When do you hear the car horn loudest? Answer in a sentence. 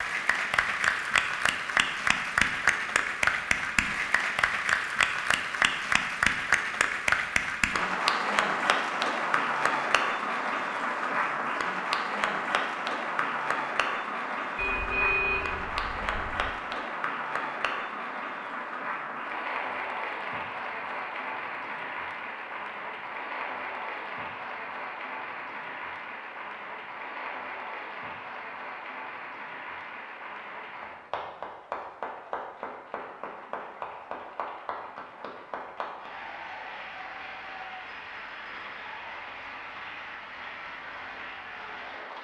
The loudest moment of the car horn is at 15 seconds.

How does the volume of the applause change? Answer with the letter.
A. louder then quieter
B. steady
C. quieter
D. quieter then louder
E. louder
C.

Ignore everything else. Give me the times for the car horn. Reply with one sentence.
The car horn can be heard from 14.6 to 16.6 s.